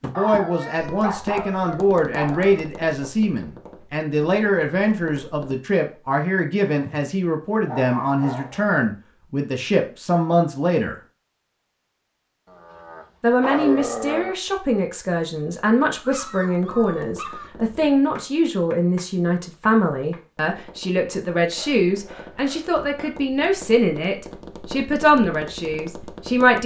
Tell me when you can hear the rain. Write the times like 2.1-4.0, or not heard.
not heard.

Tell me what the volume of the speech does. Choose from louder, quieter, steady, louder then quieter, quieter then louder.
steady.